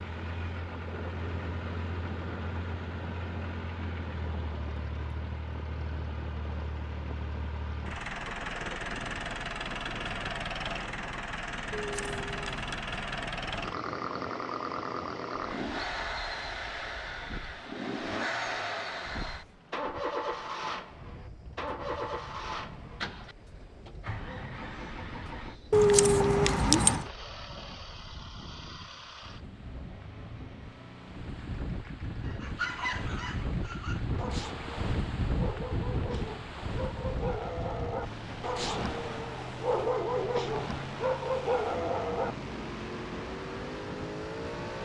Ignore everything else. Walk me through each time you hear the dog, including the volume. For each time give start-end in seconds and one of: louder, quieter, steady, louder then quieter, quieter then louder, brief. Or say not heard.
32.2-42.4 louder.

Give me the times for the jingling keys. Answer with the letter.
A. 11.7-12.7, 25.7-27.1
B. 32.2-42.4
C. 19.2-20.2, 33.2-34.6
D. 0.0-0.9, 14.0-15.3
A.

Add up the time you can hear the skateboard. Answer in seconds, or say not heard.
not heard.